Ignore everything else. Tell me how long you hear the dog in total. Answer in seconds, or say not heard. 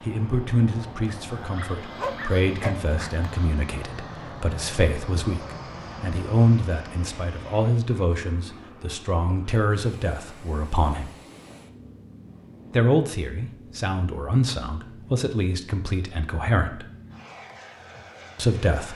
2 s.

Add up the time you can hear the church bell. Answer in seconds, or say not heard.
not heard.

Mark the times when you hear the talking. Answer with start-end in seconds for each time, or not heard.
0.0-11.2, 12.7-16.9, 18.4-18.9.